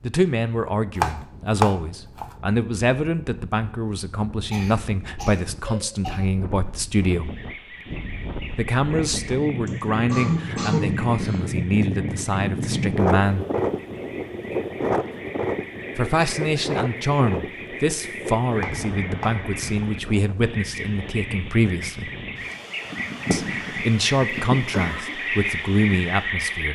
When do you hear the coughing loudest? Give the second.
11 s.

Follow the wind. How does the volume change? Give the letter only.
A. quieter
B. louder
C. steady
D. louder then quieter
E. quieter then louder
D.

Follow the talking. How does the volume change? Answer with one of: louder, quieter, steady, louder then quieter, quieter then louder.
steady.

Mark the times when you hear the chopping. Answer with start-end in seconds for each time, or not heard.
0.9-2.4, 18.6-19.9.